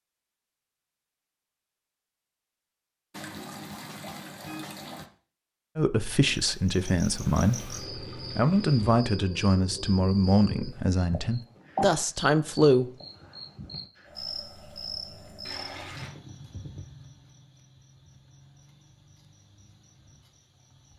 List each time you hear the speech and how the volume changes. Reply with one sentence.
You can hear the speech from 5.8 to 12.9 s, at a steady volume.